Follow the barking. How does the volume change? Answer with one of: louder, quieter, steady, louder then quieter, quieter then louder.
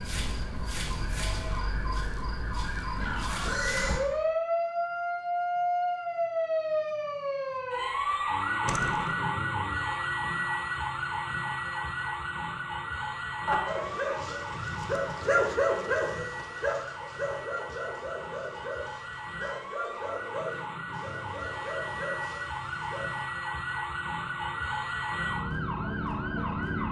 quieter.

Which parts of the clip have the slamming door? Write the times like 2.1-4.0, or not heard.
8.7-9.2.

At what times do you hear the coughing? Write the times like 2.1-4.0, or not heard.
13.4-14.2.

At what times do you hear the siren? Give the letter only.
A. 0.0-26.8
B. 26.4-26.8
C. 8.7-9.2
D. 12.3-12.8
A.